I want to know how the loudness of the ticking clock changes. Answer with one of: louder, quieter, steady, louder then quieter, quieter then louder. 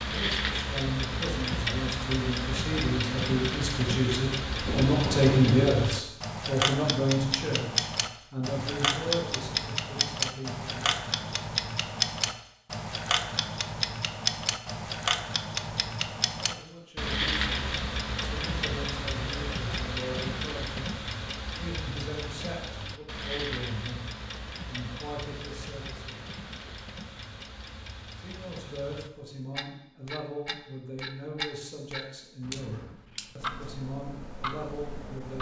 quieter.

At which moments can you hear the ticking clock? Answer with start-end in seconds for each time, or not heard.
0.0-35.3.